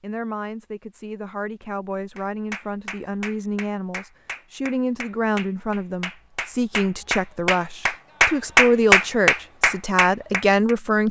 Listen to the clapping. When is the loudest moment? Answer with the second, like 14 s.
9 s.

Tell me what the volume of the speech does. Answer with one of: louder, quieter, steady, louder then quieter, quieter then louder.
louder.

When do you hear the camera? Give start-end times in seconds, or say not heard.
not heard.